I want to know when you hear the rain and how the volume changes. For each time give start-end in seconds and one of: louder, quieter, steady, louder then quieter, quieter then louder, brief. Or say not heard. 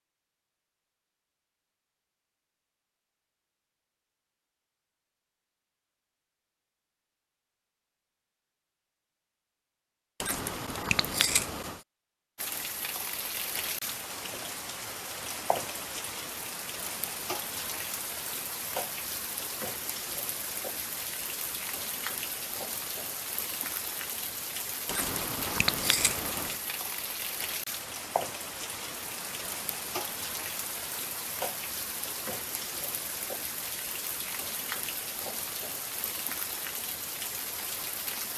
12.3-38.3 steady.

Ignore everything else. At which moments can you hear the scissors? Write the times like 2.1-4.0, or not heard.
10.2-11.8, 24.9-26.6.